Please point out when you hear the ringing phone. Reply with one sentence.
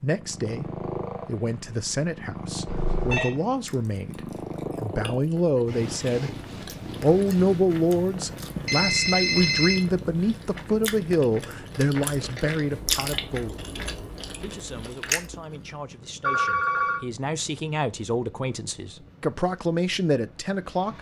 The ringing phone can be heard from 2.6 to 3.3 s, from 8.7 to 9.8 s and from 16.2 to 17.0 s.